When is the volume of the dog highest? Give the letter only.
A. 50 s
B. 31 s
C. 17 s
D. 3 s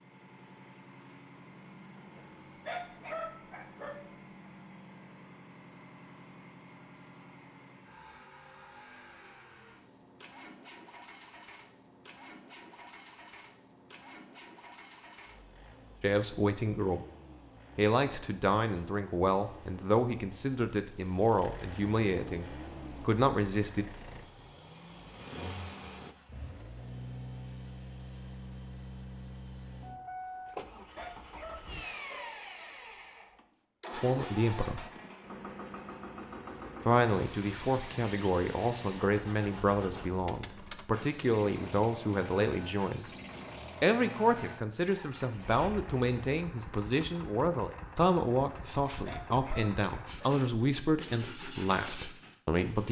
D.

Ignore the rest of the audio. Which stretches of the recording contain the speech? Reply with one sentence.
You can hear the speech from 16.0 to 17.1 s, from 17.8 to 23.9 s, from 33.9 to 34.9 s, from 36.9 to 43.0 s and from 43.8 to 52.8 s.